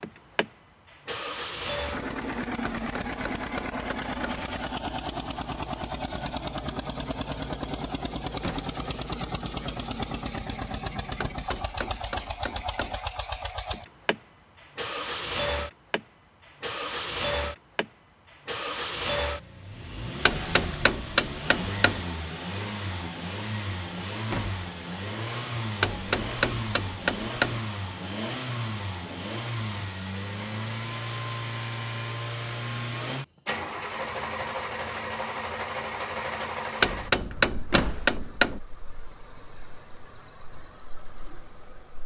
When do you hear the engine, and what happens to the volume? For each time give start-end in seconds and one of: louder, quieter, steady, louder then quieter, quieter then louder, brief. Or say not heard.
0.0-42.0 steady.